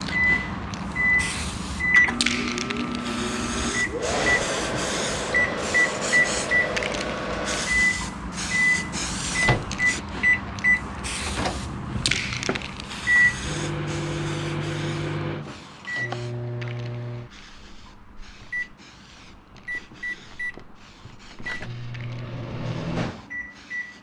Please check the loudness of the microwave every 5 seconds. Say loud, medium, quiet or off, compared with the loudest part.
loud, loud, loud, medium, medium.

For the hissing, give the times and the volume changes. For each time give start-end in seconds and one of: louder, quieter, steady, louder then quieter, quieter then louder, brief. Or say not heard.
0.0-23.9 quieter.